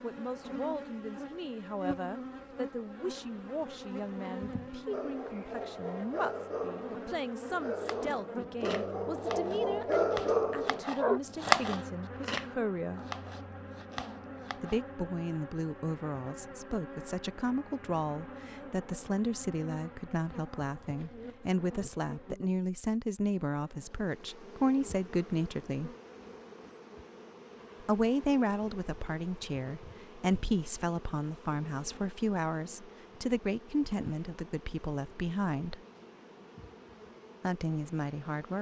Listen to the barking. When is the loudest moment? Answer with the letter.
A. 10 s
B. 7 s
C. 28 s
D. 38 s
A.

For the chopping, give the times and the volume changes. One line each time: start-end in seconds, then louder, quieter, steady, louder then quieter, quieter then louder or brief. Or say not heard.
7.8-14.8 louder then quieter.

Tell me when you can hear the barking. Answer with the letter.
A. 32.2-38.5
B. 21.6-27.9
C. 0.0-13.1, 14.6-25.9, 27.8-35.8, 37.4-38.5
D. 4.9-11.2
D.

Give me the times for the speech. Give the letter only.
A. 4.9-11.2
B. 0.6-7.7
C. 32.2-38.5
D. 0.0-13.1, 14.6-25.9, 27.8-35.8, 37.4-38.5
D.